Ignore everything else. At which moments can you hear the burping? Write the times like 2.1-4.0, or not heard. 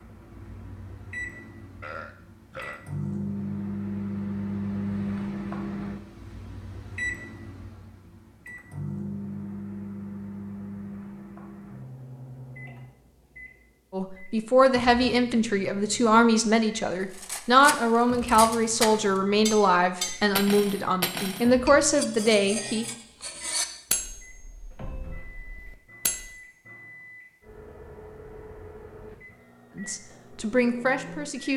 1.8-2.8.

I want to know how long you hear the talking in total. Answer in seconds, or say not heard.
11 s.